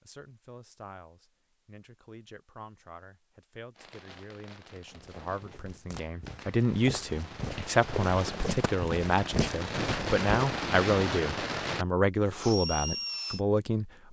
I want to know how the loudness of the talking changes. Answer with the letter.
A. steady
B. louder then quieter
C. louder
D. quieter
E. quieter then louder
C.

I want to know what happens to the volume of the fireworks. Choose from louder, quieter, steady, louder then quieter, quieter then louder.
louder.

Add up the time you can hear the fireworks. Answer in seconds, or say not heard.
10 s.